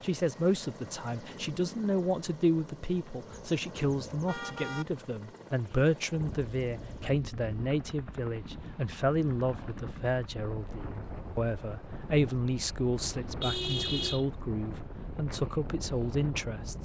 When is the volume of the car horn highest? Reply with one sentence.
The loudest moment of the car horn is at 14 seconds.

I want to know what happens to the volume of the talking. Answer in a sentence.
The volume of the talking stays about the same.